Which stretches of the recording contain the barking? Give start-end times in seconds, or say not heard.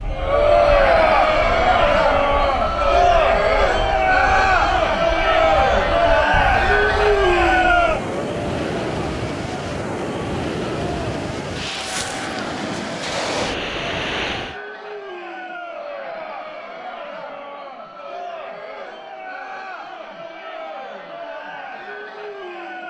not heard.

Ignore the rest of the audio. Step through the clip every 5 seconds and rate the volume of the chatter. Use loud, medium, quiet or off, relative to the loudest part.
loud, loud, quiet, quiet, quiet.